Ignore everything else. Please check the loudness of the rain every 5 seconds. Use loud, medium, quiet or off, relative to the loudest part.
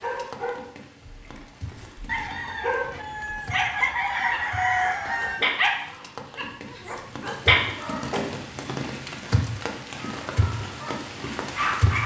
quiet, loud, loud.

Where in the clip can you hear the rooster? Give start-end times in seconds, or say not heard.
2.0-5.5.